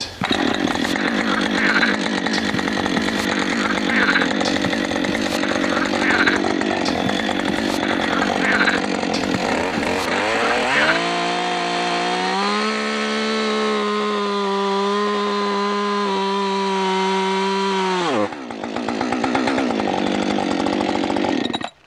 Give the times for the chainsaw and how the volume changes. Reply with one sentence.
The chainsaw can be heard from 0.1 to 21.8 s, at a steady volume.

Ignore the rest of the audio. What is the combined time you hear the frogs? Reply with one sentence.
You can hear the frogs for 11 seconds altogether.